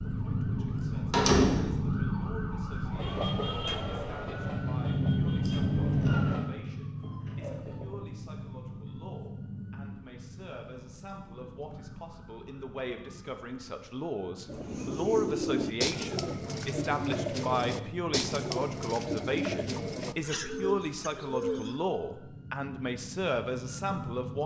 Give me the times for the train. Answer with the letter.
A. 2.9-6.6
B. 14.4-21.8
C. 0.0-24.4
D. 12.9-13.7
A.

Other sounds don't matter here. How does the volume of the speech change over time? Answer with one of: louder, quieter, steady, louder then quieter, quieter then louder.
louder.